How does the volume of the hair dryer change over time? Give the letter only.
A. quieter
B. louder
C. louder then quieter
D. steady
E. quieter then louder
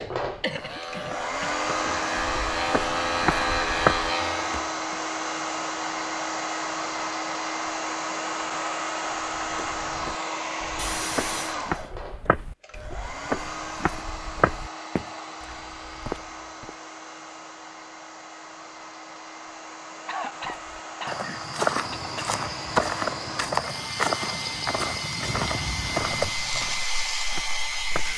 E.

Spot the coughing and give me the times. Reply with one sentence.
You can hear the coughing from 0.3 to 1.6 s, from 10.8 to 11.6 s and from 20.1 to 22.1 s.